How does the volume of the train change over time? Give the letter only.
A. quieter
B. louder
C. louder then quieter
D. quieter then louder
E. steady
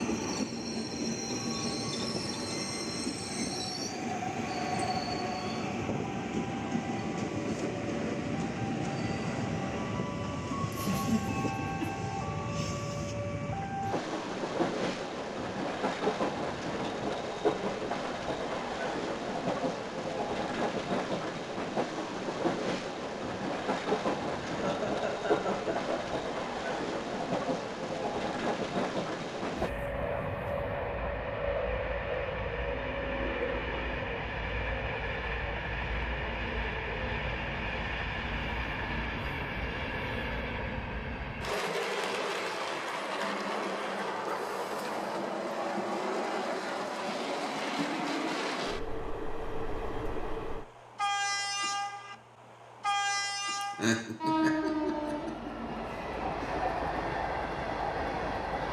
E.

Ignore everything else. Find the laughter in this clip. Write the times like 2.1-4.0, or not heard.
10.9-11.9, 24.4-26.1, 53.6-55.5.